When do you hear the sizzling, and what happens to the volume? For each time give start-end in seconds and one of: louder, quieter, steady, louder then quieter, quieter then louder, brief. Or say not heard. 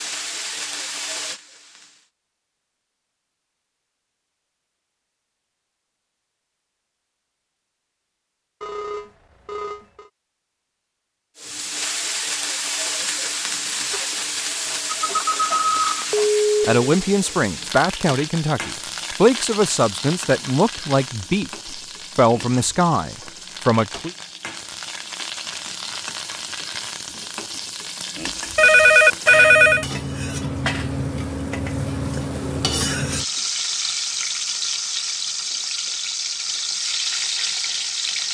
0.0-2.1 brief
11.3-38.3 quieter then louder.